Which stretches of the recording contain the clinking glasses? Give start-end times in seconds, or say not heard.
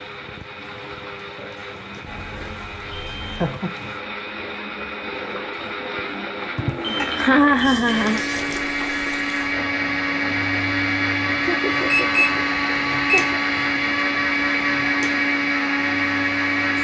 not heard.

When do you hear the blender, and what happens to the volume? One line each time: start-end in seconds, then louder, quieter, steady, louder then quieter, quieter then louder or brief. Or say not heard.
0.0-16.7 louder.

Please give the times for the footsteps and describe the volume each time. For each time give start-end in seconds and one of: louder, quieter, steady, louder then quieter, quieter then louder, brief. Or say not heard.
not heard.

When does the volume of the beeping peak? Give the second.
12 s.